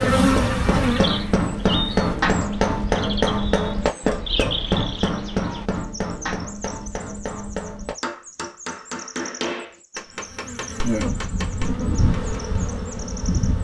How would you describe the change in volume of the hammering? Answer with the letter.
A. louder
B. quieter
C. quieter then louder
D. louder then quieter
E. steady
B.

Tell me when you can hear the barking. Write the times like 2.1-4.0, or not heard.
not heard.